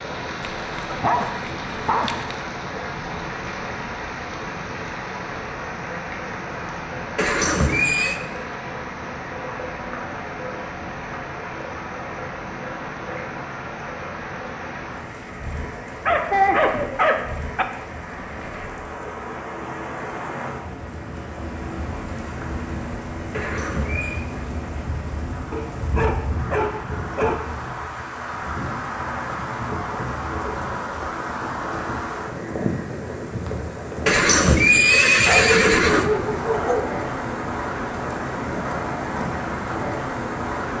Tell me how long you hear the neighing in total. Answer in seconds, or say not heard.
4 s.